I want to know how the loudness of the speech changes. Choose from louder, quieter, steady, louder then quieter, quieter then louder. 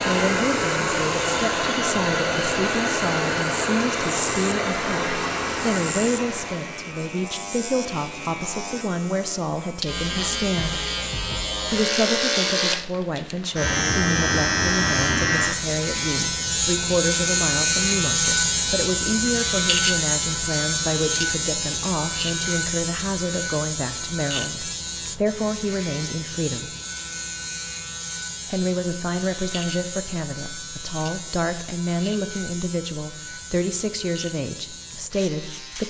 steady.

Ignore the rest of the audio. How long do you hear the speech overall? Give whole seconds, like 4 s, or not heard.
33 s.